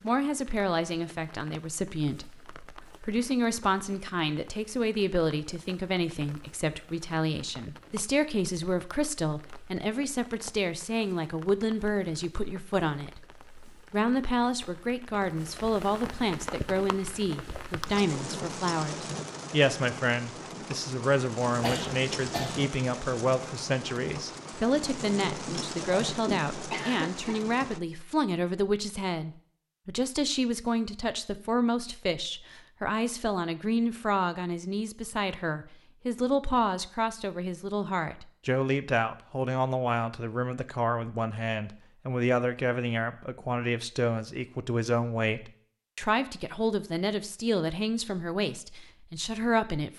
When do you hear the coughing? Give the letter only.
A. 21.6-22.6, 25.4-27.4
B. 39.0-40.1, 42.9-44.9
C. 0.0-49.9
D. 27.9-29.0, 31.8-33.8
A.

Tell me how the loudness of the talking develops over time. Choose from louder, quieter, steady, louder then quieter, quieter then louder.
steady.